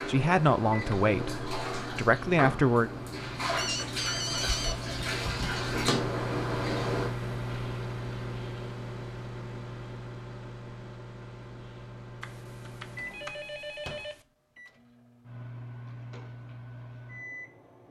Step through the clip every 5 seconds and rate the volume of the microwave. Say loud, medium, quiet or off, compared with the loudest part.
medium, loud, medium, medium.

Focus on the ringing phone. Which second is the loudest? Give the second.
4 s.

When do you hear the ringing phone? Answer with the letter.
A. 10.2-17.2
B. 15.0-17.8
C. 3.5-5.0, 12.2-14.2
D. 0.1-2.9
C.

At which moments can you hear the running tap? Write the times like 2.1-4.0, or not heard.
0.0-7.1.